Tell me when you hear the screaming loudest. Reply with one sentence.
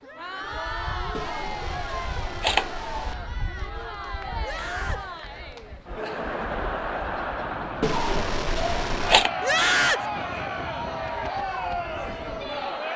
The volume of the screaming peaks at 10 seconds.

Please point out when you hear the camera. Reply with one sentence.
You can hear the camera from 1.1 to 3.1 s and from 7.8 to 9.3 s.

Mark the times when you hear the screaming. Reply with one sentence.
You can hear the screaming from 0.0 to 0.7 s, from 4.4 to 5.0 s and from 9.4 to 10.1 s.